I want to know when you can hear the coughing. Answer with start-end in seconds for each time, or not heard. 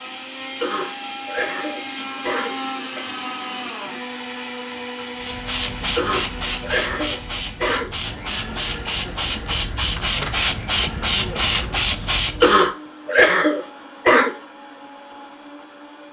0.6-3.0, 6.0-7.9, 12.4-14.3.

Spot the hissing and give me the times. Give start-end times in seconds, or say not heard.
5.2-12.7.